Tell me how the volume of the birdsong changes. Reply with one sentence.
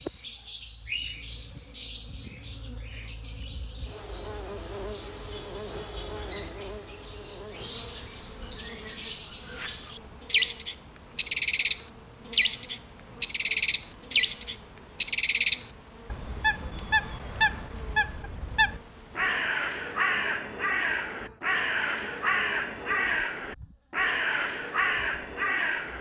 The volume of the birdsong goes up.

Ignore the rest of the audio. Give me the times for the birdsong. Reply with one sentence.
You can hear the birdsong from 0.0 to 25.9 s.